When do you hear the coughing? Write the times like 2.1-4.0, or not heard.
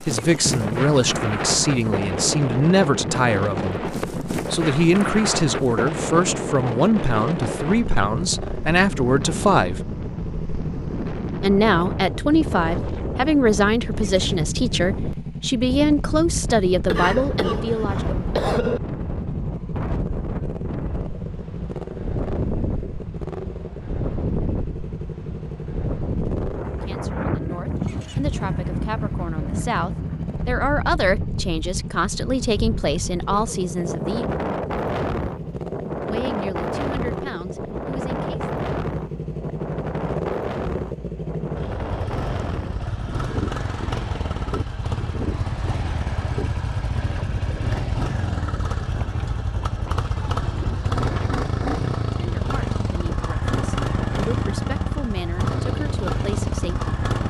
16.9-18.8.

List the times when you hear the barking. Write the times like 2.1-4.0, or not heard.
not heard.